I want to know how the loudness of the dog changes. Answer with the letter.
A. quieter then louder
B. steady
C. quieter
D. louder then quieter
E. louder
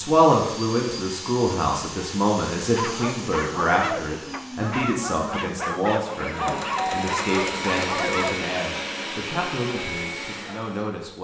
B.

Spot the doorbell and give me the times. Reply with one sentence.
The doorbell can be heard from 6.3 to 8.3 s.